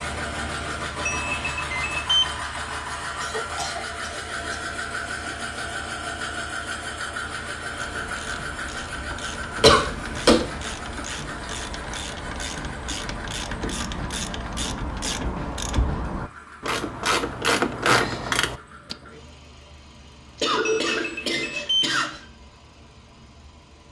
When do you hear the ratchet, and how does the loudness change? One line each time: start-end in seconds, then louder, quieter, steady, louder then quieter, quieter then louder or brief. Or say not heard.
7.8-18.9 louder.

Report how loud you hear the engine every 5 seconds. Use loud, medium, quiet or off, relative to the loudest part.
loud, loud, medium, quiet, quiet.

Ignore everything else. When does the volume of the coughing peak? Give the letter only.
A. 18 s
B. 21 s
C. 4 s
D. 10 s
D.